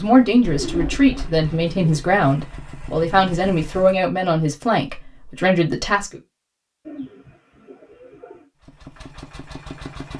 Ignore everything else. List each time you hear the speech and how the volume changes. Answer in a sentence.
You can hear the speech from 0.0 to 6.2 s, at a steady volume.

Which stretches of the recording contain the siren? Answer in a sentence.
The siren can't be heard in this clip.